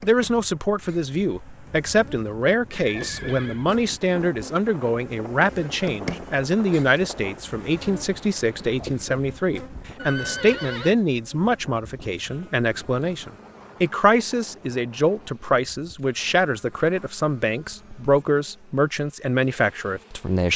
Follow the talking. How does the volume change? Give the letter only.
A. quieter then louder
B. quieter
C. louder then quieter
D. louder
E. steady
E.